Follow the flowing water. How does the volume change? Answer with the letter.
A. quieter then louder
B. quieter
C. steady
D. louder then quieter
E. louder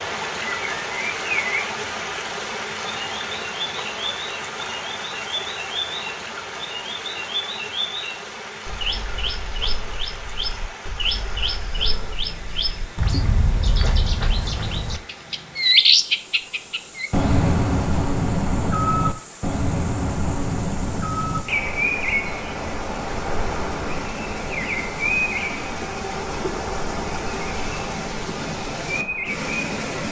A.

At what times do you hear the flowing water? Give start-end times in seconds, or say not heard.
0.0-30.0.